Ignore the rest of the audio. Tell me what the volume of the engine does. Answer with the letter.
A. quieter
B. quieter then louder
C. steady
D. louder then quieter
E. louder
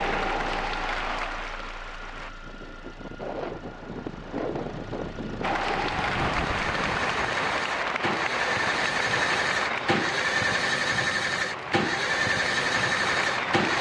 E.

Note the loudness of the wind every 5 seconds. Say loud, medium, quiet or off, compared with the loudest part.
loud, loud, off.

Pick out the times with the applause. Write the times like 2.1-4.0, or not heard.
0.0-2.3, 5.4-13.7.